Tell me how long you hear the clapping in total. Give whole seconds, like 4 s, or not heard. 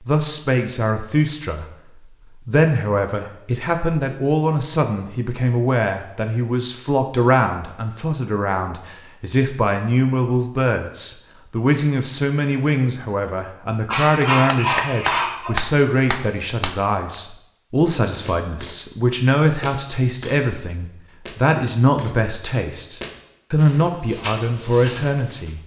3 s.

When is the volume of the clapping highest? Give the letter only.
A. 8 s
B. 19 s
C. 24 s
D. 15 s
D.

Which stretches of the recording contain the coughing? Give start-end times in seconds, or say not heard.
13.9-15.6.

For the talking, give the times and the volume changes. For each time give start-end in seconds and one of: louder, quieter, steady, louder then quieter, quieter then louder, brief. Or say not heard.
0.1-1.6 brief
2.5-25.6 steady.